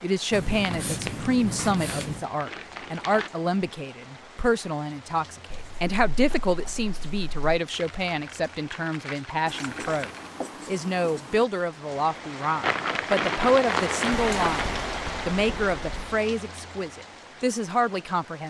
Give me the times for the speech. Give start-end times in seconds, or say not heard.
0.0-14.7, 15.2-18.4.